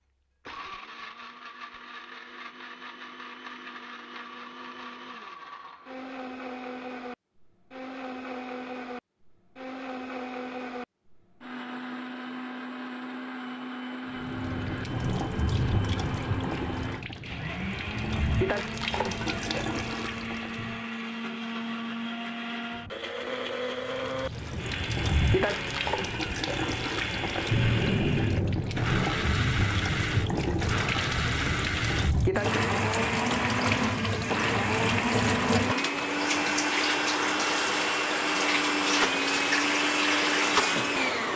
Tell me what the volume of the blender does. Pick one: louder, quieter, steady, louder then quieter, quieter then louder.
louder.